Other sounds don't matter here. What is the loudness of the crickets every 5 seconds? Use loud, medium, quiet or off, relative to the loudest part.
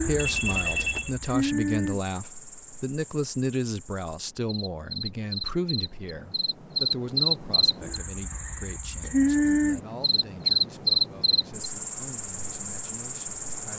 medium, loud, loud.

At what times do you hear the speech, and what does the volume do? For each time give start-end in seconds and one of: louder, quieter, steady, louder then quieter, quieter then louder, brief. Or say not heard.
0.0-13.7 quieter.